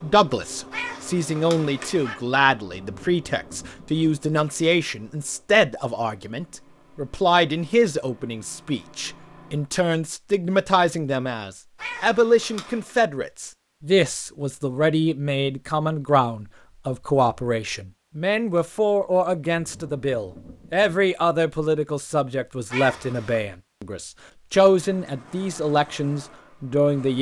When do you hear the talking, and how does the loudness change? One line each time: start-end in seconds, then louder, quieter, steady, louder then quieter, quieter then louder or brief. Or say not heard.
0.0-27.1 steady.